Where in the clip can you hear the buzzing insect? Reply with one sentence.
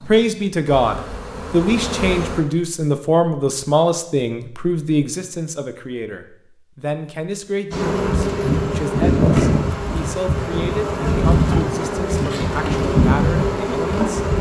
You can hear the buzzing insect from 0.0 to 2.4 s and from 7.7 to 14.3 s.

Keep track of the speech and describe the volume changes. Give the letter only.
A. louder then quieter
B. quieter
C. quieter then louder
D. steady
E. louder
B.